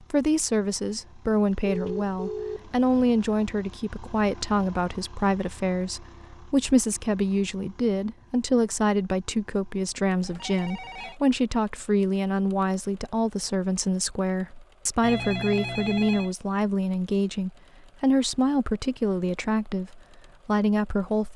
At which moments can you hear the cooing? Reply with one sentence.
You can't hear the cooing here.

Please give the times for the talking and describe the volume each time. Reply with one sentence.
You can hear the talking from 0.1 to 21.3 s, at a steady volume.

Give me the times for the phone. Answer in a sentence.
The phone can be heard from 1.6 to 3.2 s, from 10.2 to 11.2 s and from 15.0 to 16.3 s.